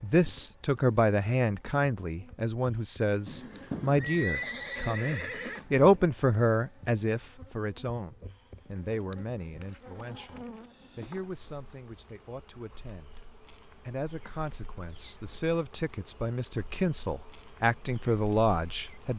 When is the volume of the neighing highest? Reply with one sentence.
The volume of the neighing peaks at 4 seconds.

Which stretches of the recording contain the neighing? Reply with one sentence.
You can hear the neighing from 3.2 to 5.7 s.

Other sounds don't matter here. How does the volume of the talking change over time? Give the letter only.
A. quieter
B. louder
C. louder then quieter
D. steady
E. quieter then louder
E.